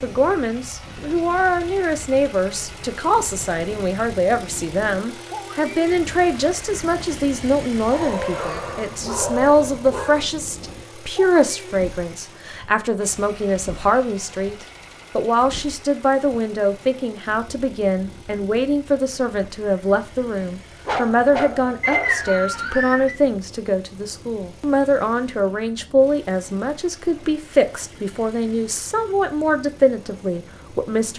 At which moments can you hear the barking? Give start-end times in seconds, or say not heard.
7.9-10.2, 20.9-22.3.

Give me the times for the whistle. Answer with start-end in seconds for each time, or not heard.
21.8-23.1.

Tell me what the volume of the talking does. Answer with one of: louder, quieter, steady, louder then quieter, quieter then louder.
steady.